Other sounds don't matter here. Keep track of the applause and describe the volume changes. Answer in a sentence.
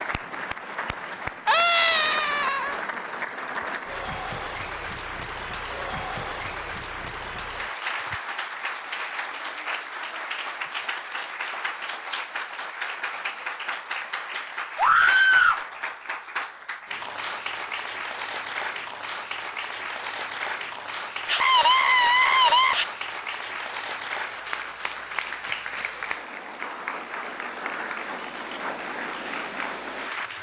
The volume of the applause stays about the same.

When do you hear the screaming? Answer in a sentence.
The screaming can be heard from 1.4 to 2.8 s, from 14.8 to 15.6 s and from 21.2 to 22.9 s.